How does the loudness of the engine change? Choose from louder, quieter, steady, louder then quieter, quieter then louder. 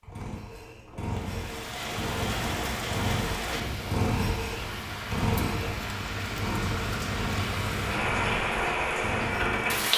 louder then quieter.